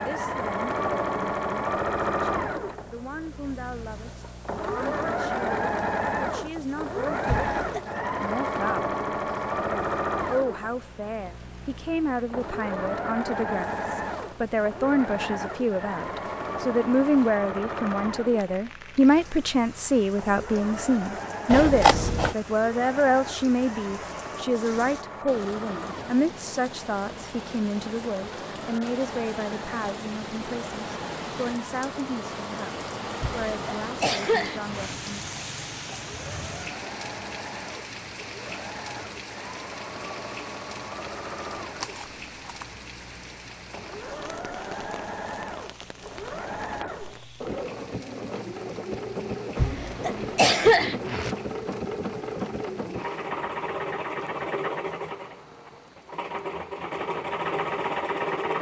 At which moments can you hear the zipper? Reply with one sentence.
You can't hear the zipper here.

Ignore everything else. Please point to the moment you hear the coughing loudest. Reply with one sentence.
The volume of the coughing peaks at 51 seconds.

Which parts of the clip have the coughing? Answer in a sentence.
You can hear the coughing from 7.2 to 7.8 s, from 33.2 to 35.0 s and from 49.5 to 51.4 s.